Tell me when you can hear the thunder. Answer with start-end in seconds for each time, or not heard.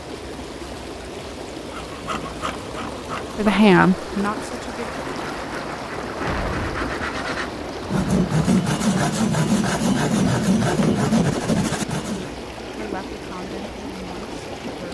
5.9-8.3.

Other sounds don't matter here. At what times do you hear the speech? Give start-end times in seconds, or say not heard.
3.4-4.9, 12.7-14.8.